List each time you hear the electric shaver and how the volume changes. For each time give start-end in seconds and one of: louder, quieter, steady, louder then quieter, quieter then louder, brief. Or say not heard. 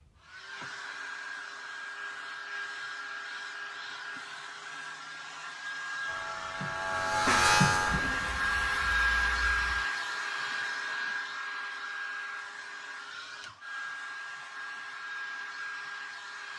6.0-11.0 louder then quieter.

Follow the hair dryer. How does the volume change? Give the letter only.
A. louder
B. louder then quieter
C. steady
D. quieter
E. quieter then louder
B.